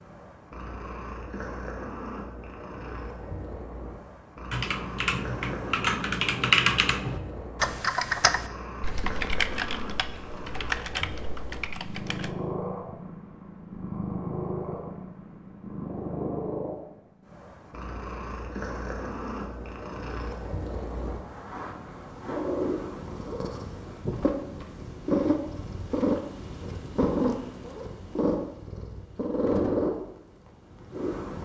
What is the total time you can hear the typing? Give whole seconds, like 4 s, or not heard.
8 s.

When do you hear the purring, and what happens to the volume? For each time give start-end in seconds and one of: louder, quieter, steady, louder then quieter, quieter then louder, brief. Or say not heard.
0.0-31.4 louder.